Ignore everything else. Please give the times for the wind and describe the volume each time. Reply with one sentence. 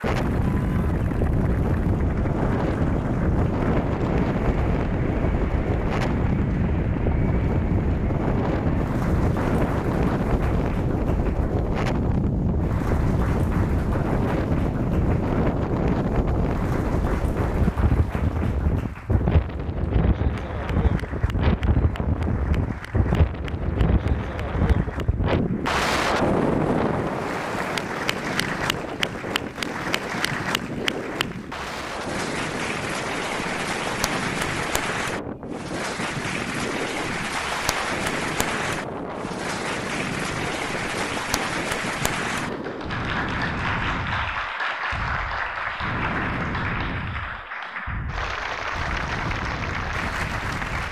The wind can be heard from 0.0 to 50.8 s, getting quieter.